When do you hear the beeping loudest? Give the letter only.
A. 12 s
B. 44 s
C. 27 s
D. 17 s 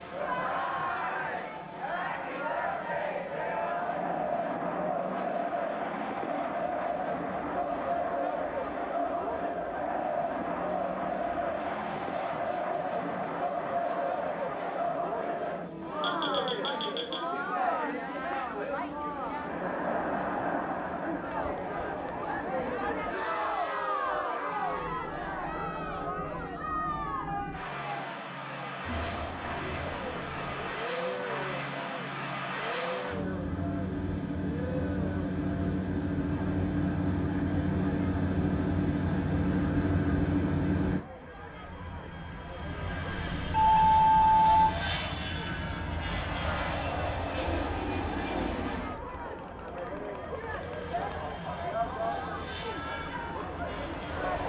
B.